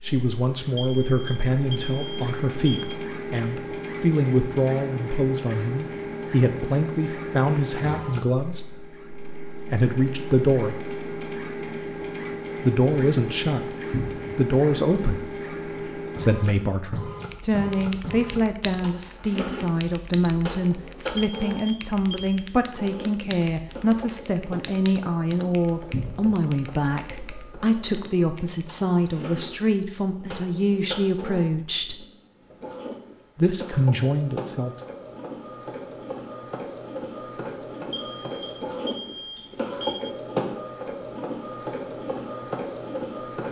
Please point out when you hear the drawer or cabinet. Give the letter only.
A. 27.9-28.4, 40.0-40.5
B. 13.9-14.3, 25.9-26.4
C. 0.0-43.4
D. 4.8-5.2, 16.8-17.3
B.